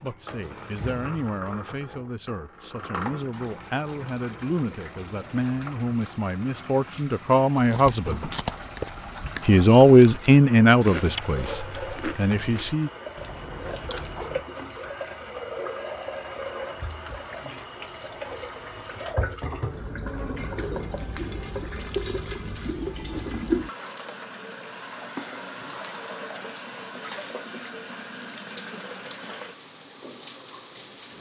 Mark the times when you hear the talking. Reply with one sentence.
You can hear the talking from 0.0 to 8.3 s and from 9.4 to 12.9 s.